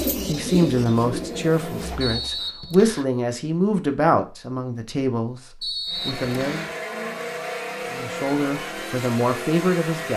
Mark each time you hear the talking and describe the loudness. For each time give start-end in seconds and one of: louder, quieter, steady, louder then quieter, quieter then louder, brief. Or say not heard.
0.2-6.7 quieter
7.9-10.1 brief.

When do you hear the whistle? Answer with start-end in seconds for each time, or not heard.
2.0-3.0, 5.6-6.8.